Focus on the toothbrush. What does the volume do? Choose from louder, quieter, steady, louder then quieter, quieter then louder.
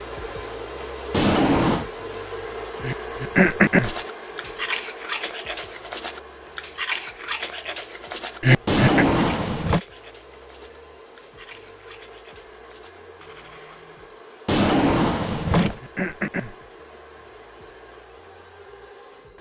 quieter.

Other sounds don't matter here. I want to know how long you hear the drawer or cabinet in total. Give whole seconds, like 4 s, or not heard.
3 s.